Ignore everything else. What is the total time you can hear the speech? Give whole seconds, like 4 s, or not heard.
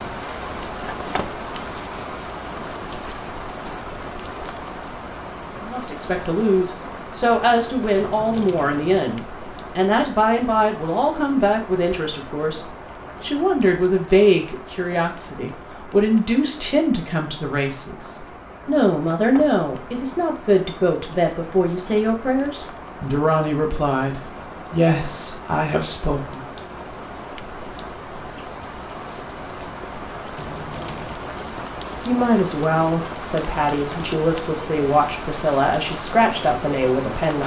26 s.